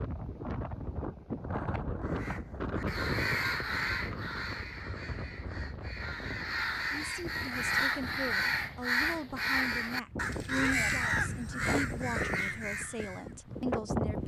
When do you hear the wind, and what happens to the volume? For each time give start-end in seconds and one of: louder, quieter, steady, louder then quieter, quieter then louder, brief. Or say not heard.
0.0-14.2 quieter then louder.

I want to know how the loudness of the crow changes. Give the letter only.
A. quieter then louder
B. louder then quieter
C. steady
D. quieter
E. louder
A.